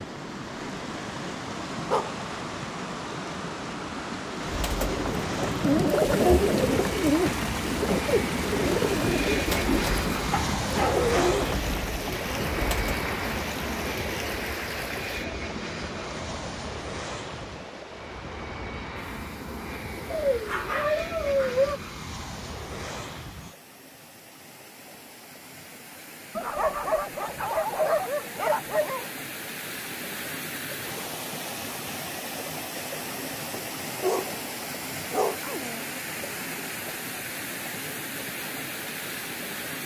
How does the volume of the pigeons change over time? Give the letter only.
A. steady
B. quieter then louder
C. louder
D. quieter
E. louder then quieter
D.